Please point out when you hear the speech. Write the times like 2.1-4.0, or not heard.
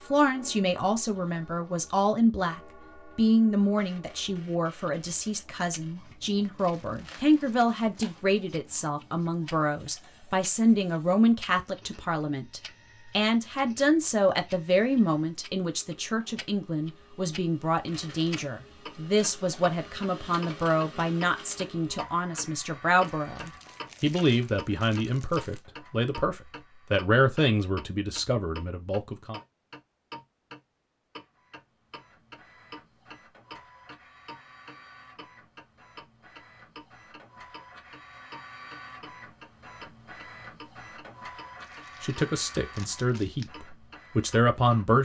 0.1-29.4, 42.0-45.0.